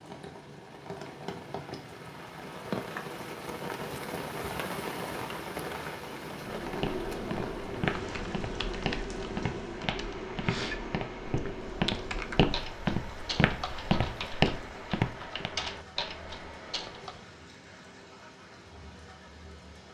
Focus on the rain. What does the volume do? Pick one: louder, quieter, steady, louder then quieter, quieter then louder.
quieter.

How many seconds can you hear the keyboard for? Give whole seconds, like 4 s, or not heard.
11 s.